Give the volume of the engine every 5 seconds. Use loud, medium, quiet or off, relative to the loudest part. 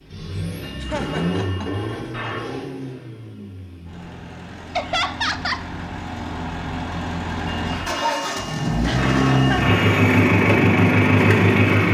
quiet, medium, loud.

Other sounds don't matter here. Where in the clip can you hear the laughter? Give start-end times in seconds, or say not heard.
0.8-2.4, 4.8-5.7, 8.8-9.8.